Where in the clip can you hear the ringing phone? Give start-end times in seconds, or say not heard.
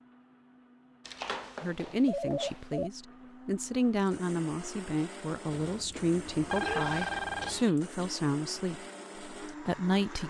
1.1-2.9, 5.5-7.6.